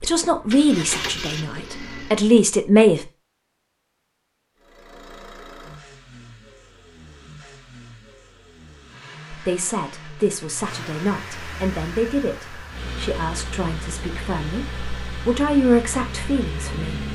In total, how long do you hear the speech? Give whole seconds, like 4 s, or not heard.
11 s.